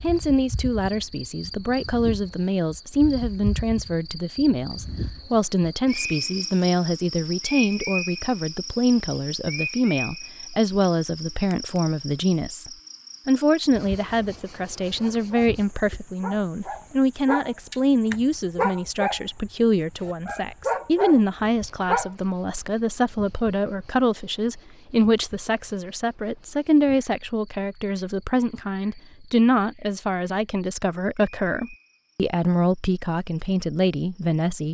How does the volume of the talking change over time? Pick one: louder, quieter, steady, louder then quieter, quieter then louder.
steady.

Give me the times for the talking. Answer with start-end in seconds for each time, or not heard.
0.0-34.6.